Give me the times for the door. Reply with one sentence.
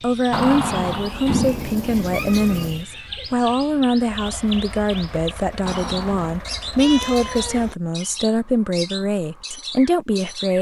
You can hear the door from 0.3 to 1.9 s and from 5.7 to 6.5 s.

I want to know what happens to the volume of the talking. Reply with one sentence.
The volume of the talking stays about the same.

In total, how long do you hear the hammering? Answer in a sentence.
The hammering can't be heard in this clip.